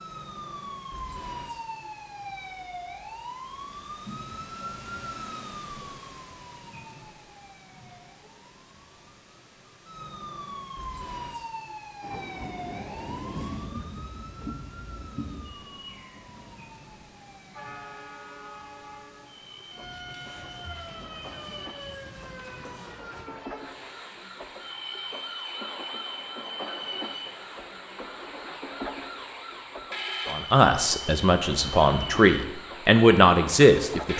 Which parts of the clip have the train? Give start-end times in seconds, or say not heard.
12.0-34.1.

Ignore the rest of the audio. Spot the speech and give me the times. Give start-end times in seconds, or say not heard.
30.2-34.1.